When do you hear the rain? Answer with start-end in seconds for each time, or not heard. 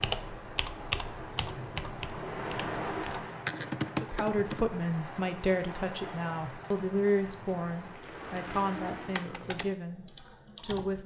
0.0-9.4.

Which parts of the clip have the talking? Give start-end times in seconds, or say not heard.
4.0-11.0.